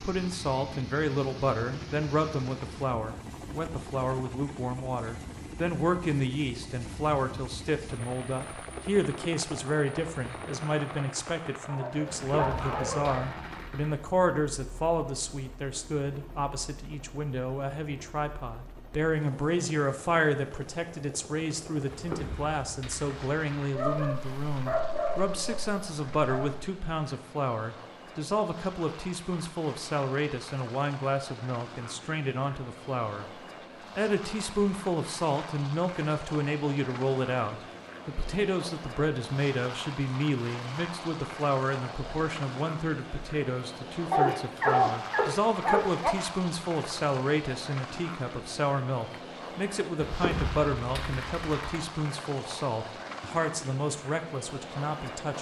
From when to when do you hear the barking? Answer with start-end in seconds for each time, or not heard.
11.7-13.2, 23.7-26.7, 44.1-46.1.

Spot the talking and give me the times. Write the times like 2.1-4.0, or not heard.
0.0-55.3.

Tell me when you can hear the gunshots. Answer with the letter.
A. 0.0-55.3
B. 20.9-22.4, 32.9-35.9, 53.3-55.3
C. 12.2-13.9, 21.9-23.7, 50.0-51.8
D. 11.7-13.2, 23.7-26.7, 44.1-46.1
C.